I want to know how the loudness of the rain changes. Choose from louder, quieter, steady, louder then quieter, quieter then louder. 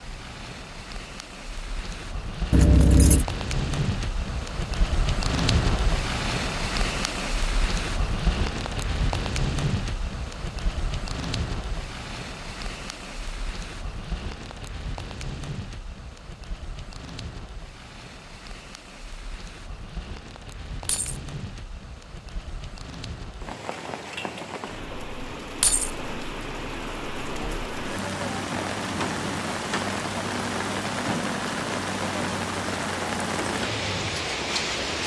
quieter then louder.